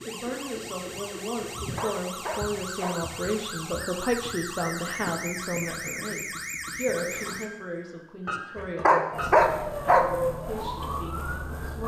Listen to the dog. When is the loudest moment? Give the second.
9 s.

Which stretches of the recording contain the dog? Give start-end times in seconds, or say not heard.
1.7-3.0, 8.6-10.1.